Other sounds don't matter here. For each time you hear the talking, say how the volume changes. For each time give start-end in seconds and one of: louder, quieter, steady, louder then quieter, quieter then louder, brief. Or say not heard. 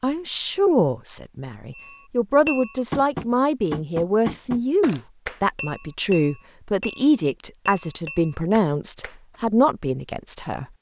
0.0-10.7 steady.